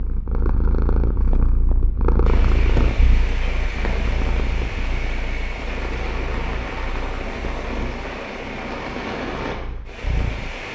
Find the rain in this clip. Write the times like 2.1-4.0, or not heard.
2.2-10.6.